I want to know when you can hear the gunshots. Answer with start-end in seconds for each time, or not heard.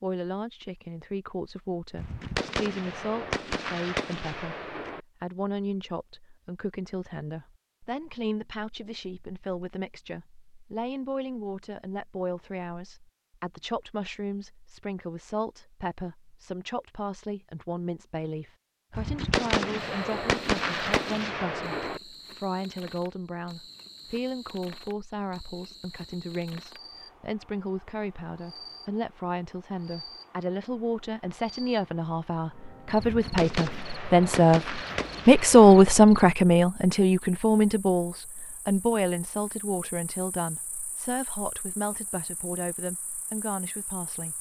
1.9-5.0, 18.9-22.0, 33.0-35.9.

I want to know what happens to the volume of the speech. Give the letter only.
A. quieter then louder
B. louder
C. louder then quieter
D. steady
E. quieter
B.